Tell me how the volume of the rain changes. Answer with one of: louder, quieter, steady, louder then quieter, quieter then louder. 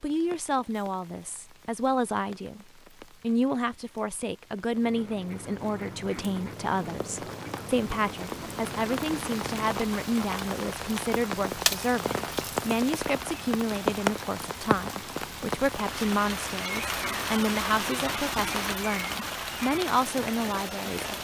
louder.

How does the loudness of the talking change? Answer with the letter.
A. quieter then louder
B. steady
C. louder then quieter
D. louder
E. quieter
B.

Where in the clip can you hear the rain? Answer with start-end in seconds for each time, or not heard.
0.0-21.1.